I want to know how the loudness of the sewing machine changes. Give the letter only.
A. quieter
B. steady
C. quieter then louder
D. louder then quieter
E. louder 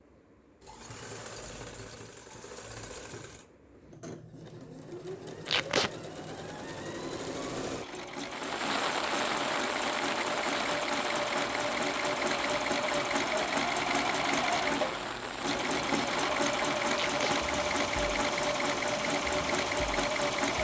E.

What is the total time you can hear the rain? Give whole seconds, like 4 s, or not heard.
12 s.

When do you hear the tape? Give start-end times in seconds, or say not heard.
5.5-5.9, 16.9-17.4.